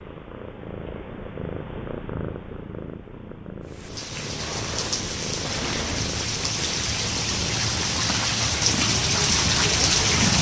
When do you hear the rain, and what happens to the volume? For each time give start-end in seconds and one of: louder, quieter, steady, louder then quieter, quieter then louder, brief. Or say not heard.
3.6-10.3 louder.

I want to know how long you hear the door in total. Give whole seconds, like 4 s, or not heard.
2 s.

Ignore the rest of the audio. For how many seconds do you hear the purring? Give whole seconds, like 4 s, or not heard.
10 s.